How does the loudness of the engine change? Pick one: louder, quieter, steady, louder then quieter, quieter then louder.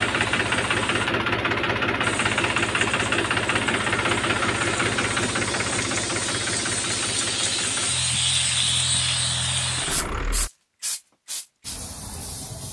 quieter.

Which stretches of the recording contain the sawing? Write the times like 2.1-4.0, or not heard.
not heard.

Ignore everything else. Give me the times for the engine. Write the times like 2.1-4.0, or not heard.
0.0-10.5.